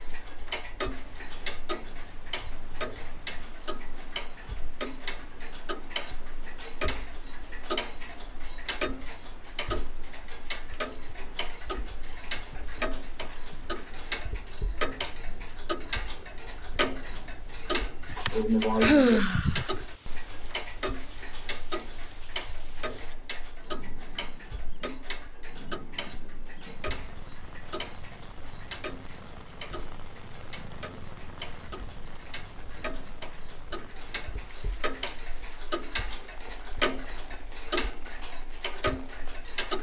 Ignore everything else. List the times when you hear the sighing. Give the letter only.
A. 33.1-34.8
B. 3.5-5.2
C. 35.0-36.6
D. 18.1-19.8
D.